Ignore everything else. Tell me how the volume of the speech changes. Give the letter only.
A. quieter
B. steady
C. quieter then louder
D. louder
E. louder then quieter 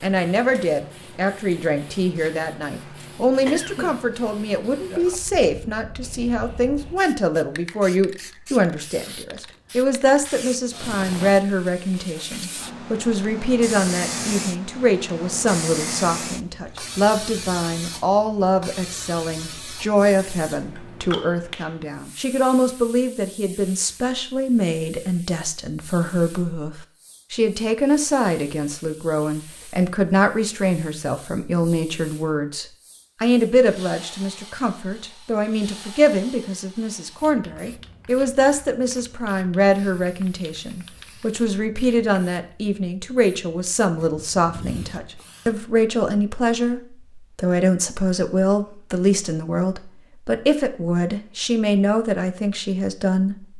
B.